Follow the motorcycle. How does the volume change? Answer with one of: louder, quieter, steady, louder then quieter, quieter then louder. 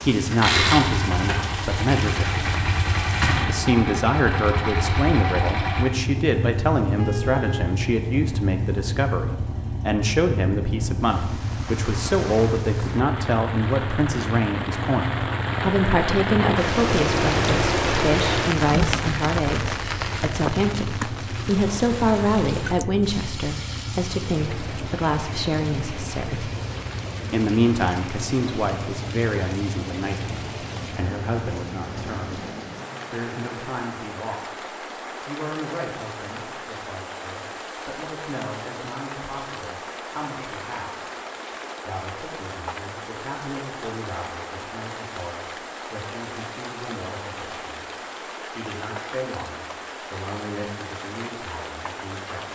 quieter.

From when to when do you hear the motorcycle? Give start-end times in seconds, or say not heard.
0.2-32.2.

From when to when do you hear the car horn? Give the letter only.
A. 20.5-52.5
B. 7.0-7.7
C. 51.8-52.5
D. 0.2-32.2
B.